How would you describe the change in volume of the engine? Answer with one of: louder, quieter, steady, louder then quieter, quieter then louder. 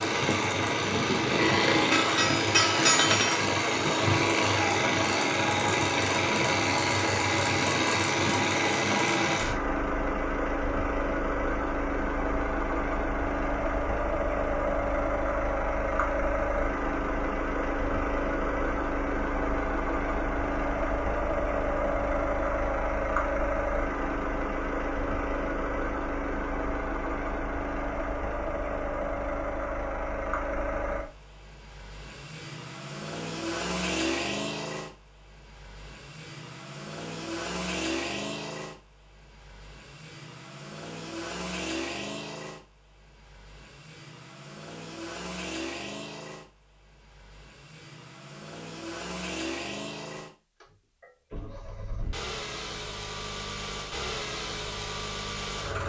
quieter.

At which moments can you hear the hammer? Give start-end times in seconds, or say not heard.
1.9-3.5.